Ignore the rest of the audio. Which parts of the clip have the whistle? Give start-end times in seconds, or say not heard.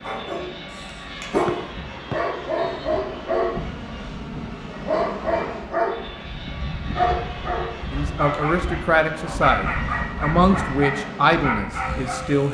1.4-2.9.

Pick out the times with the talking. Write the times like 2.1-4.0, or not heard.
7.9-12.4.